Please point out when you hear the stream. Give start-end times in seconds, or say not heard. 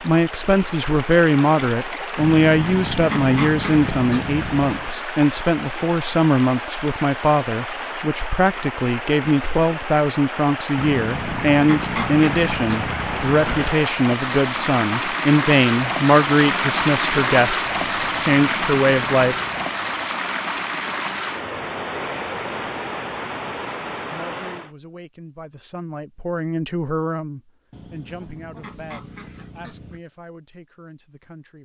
0.0-24.7.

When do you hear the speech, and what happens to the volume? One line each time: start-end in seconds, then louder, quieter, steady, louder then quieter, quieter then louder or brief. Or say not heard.
0.0-19.4 steady
24.1-31.6 louder then quieter.